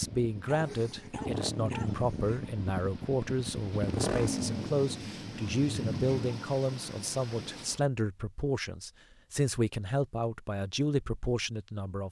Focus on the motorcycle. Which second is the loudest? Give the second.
4 s.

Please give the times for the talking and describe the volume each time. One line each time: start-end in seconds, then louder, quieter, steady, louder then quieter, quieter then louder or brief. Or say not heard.
0.0-12.0 steady.